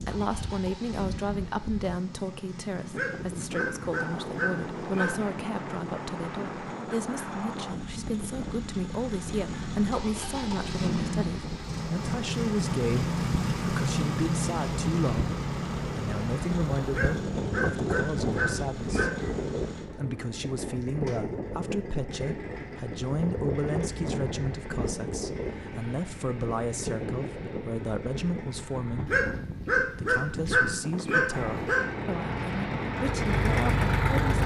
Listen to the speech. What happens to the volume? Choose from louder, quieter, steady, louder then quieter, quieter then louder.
steady.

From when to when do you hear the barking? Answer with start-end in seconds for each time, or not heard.
2.9-5.2, 16.9-19.4, 29.1-31.9.